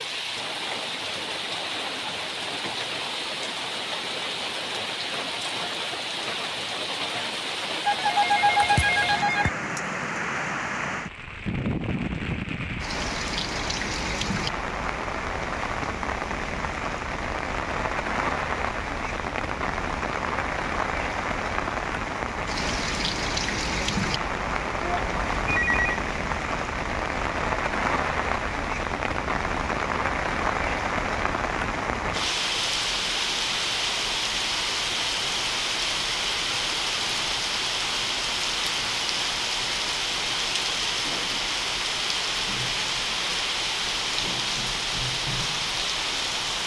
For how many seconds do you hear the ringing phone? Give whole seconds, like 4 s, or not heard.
3 s.